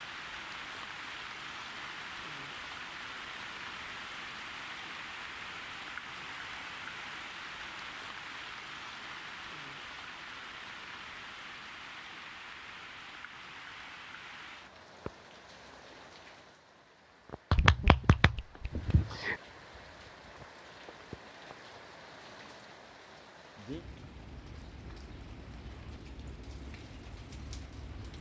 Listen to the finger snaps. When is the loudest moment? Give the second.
18 s.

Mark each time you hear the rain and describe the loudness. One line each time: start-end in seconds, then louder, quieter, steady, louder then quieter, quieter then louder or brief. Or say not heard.
0.0-28.1 quieter.